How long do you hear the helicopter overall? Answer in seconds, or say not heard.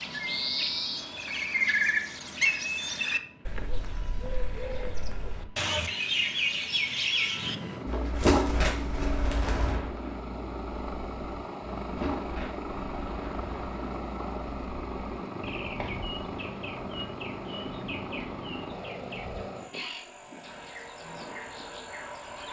22 s.